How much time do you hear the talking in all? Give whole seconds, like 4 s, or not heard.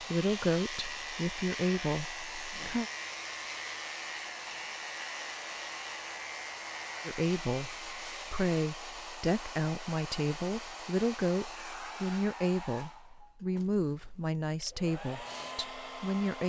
12 s.